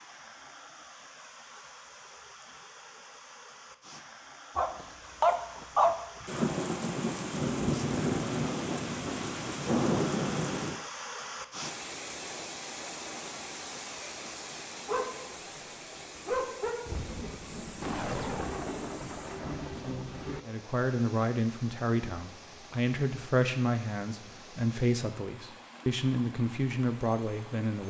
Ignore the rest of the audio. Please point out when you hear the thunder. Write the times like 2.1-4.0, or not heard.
6.2-10.8, 16.9-20.4.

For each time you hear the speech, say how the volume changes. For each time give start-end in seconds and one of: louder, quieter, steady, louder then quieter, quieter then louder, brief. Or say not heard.
20.4-27.8 steady.